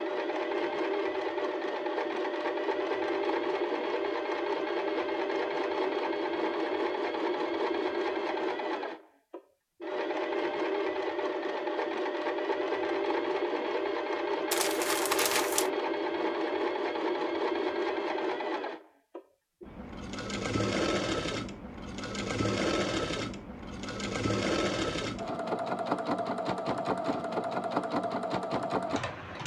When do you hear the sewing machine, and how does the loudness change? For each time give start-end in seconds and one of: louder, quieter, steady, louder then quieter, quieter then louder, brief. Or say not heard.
0.0-29.4 steady.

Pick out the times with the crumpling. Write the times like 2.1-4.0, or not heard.
14.5-15.7.